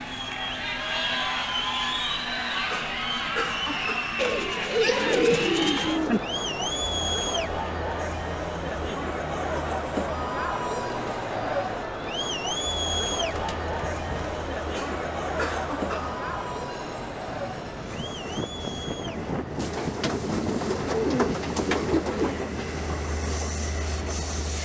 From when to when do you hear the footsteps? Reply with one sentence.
The footsteps can't be heard in this clip.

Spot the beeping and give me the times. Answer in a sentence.
You can't hear the beeping here.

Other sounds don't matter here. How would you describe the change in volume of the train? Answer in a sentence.
The volume of the train goes up.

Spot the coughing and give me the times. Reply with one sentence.
The coughing can be heard from 2.6 to 4.2 s and from 14.7 to 16.2 s.